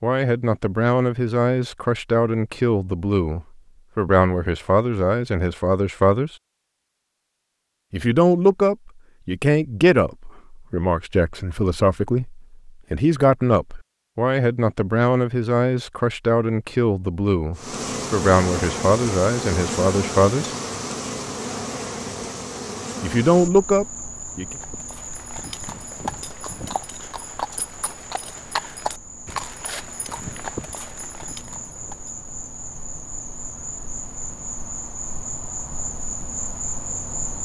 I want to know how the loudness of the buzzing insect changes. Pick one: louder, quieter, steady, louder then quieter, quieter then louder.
quieter then louder.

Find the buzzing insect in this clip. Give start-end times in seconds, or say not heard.
17.6-37.4.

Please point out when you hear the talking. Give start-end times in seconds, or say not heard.
0.0-6.3, 7.9-20.4, 23.0-24.6.